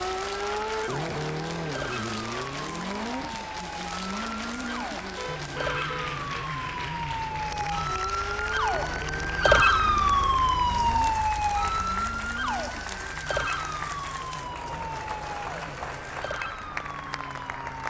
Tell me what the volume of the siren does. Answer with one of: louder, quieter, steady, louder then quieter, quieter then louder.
louder then quieter.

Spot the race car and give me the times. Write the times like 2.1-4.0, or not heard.
0.0-17.8.